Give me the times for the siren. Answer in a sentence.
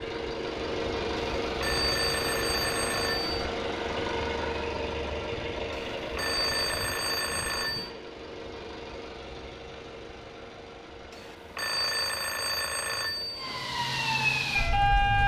The siren can be heard from 13.3 to 15.2 s.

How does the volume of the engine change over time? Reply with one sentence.
The volume of the engine goes down.